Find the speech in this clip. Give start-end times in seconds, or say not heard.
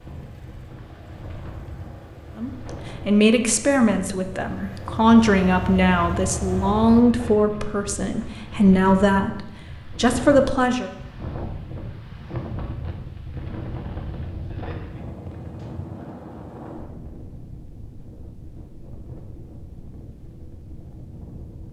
2.4-10.9.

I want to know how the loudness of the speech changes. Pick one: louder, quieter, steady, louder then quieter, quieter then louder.
steady.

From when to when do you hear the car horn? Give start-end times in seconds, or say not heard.
not heard.